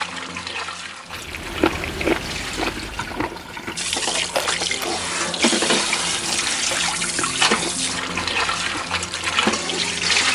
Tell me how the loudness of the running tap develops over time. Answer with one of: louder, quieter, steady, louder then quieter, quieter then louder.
louder.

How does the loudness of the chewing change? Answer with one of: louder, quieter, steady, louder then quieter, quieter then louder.
quieter.